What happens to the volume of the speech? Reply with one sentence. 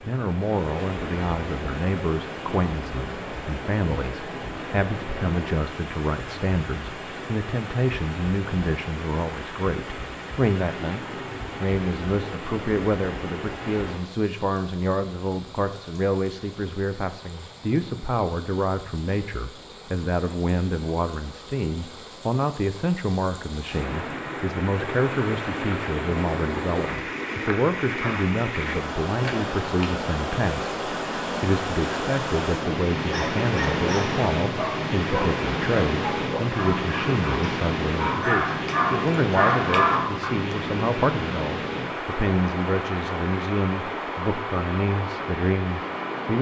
The loudness of the speech stays about the same.